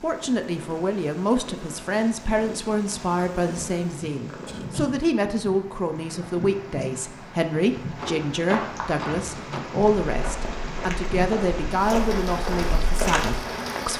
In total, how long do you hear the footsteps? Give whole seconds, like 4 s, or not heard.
6 s.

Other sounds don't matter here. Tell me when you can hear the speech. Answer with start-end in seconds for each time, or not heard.
0.0-13.9.